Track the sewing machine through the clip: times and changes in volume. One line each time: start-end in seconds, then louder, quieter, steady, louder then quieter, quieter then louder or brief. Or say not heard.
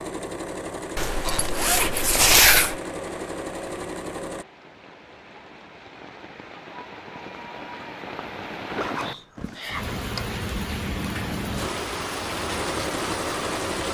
0.0-4.5 steady
11.6-13.9 brief.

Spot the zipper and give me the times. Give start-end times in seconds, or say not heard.
0.9-2.8, 8.7-10.4.